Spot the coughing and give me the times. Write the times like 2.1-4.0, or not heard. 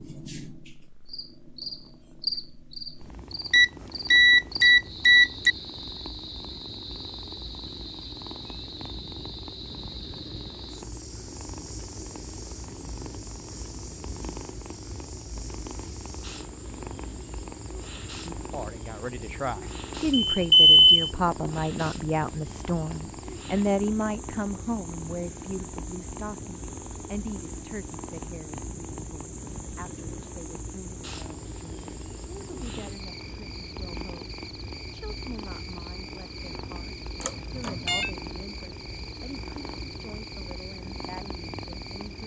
not heard.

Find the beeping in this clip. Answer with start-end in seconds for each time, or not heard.
3.5-5.5, 20.1-21.1, 37.2-38.1.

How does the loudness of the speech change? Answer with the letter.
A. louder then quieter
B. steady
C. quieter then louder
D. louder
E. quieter
E.